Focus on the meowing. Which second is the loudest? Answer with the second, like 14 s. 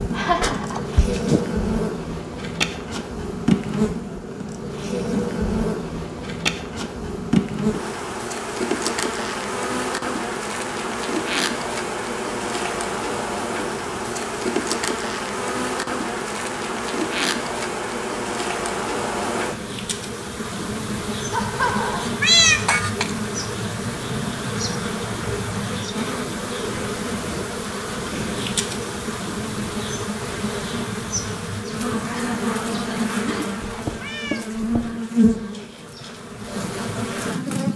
22 s.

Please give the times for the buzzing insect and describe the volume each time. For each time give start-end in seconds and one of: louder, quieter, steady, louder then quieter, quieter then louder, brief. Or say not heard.
0.0-37.7 steady.